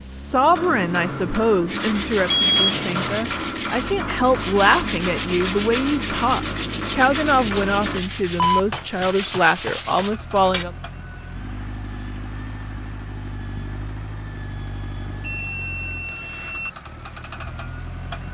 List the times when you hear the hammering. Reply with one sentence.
You can hear the hammering from 0.3 to 10.7 s.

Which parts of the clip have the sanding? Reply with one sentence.
The sanding can be heard from 1.6 to 10.2 s.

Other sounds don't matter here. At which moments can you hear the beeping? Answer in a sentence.
You can hear the beeping from 2.3 to 3.0 s, from 8.3 to 9.1 s and from 15.2 to 16.7 s.